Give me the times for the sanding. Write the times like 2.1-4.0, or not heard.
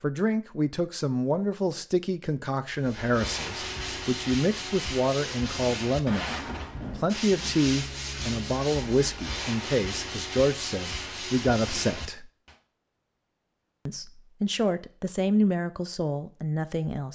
2.7-12.6.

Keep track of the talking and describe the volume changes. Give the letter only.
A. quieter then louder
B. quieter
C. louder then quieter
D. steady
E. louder
D.